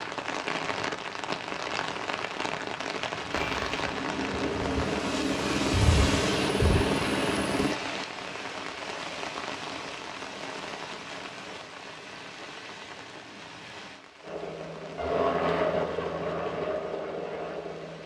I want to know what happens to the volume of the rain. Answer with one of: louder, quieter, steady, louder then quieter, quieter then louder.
quieter.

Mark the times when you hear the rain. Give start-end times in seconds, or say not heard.
0.0-18.0.